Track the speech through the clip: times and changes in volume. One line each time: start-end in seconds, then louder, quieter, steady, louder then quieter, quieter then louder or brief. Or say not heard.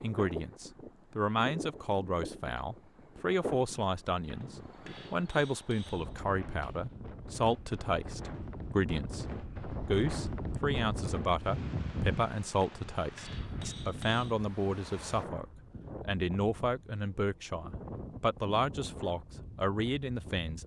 0.0-20.6 steady.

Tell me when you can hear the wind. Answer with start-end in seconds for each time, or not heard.
0.0-20.6.